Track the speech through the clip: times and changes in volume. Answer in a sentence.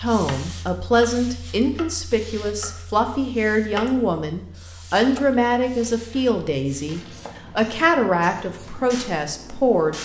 The speech can be heard from 0.0 to 10.0 s, at a steady volume.